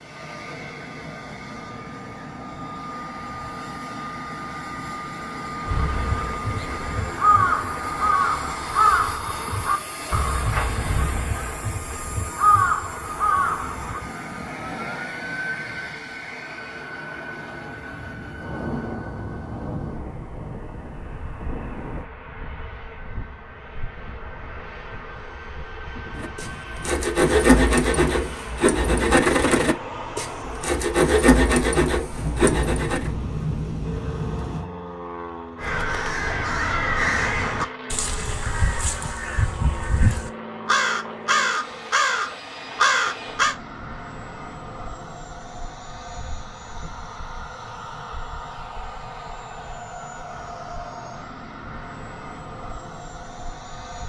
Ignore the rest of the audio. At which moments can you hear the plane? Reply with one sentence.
The plane can be heard from 0.0 to 54.0 s.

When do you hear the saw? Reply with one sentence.
The saw can be heard from 26.2 to 33.1 s.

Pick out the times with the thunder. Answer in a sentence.
You can hear the thunder from 18.4 to 22.1 s and from 32.1 to 34.7 s.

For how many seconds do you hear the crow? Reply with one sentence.
You can hear the crow for 16 seconds altogether.